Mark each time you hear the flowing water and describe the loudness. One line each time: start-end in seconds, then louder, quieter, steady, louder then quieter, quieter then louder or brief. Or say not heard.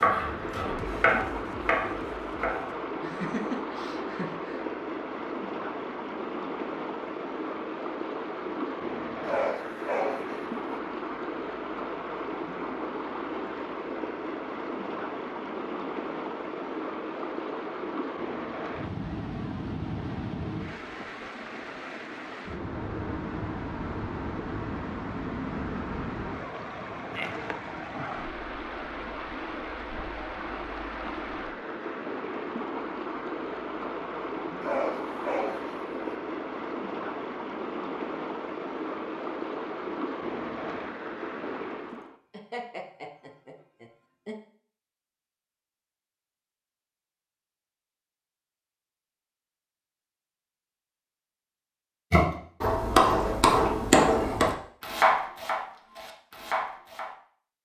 0.0-42.1 steady.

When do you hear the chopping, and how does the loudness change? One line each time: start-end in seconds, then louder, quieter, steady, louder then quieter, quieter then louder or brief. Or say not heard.
0.0-2.7 brief
52.1-57.1 quieter.